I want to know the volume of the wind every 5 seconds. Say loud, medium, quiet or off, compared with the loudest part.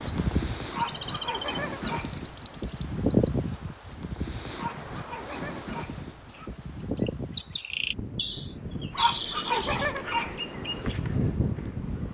loud, medium, loud.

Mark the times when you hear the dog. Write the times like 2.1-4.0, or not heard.
0.7-2.2, 4.5-6.5, 8.9-10.4.